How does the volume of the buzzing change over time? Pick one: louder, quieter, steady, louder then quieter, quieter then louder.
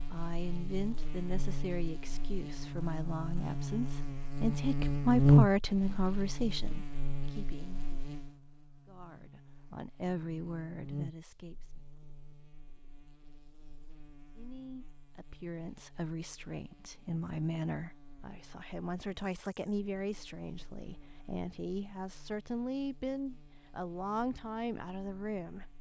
quieter.